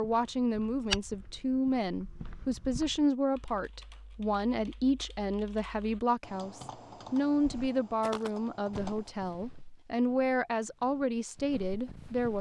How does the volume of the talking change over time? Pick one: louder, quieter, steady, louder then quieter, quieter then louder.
steady.